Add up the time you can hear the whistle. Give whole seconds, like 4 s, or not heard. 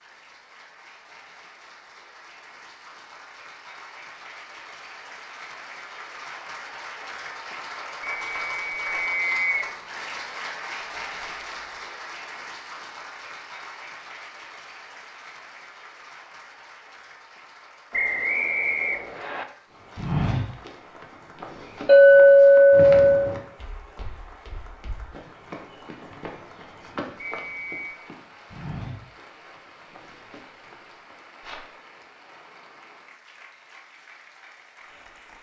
4 s.